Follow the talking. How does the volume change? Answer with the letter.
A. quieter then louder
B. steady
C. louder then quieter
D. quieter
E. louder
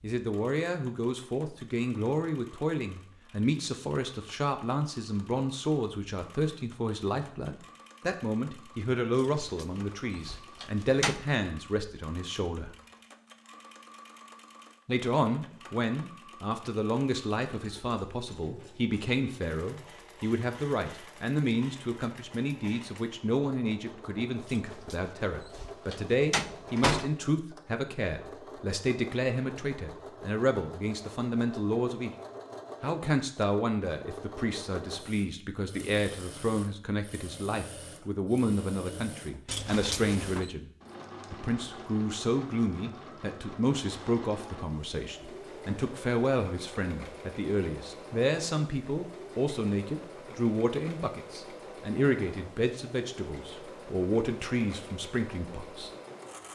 B.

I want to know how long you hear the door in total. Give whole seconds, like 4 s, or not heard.
6 s.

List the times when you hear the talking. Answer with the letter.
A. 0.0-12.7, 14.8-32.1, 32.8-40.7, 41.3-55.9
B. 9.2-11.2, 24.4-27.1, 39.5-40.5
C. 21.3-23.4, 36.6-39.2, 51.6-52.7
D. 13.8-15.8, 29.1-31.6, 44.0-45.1
A.